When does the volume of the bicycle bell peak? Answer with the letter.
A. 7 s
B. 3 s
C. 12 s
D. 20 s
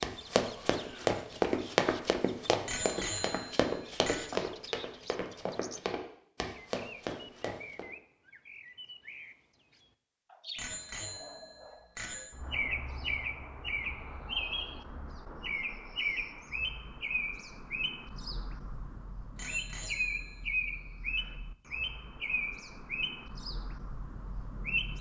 B.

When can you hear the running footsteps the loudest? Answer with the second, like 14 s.
2 s.